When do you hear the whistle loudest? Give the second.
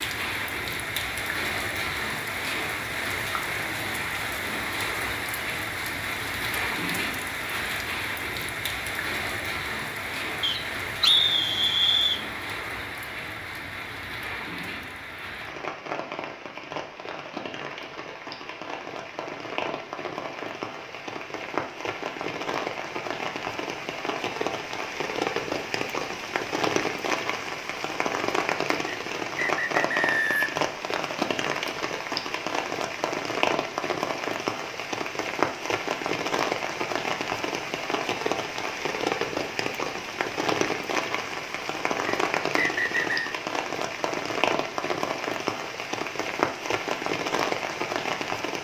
11 s.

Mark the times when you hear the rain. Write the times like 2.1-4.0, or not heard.
0.0-48.6.